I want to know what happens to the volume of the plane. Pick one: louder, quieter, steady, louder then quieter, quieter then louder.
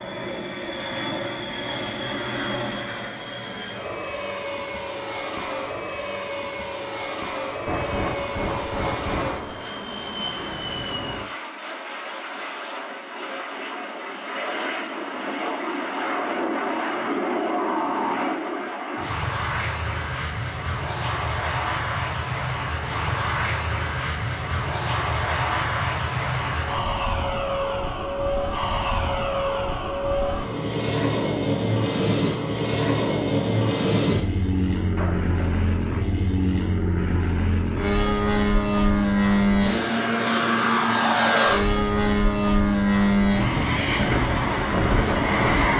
louder.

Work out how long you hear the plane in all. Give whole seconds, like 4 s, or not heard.
46 s.